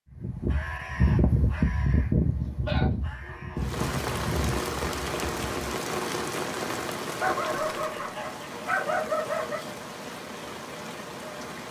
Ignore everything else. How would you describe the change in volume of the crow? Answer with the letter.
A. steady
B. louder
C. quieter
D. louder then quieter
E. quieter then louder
C.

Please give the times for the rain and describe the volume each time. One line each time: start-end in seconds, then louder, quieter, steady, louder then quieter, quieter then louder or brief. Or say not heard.
3.5-11.6 quieter.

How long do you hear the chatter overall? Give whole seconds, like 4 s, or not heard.
not heard.